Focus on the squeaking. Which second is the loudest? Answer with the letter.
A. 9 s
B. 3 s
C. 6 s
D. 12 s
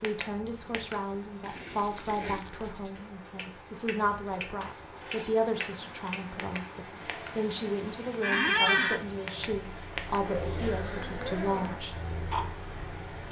A.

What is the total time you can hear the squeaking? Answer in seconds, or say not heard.
2 s.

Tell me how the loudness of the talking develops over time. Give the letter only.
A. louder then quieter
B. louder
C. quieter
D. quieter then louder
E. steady
E.